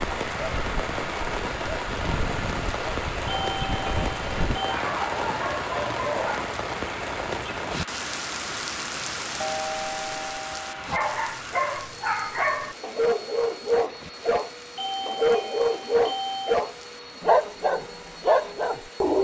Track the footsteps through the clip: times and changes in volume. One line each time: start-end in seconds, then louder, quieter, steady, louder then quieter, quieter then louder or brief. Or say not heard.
not heard.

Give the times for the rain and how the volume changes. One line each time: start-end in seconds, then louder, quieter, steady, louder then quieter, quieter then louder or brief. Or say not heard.
0.0-19.2 quieter.